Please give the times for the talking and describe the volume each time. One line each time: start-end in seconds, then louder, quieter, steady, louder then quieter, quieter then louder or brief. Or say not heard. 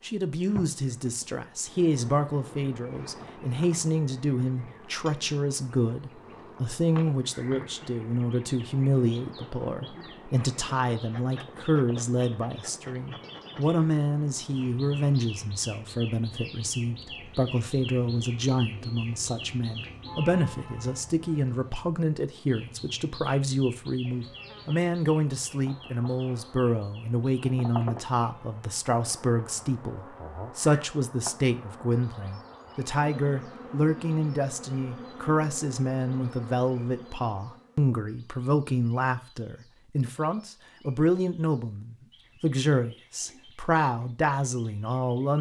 0.0-45.3 steady.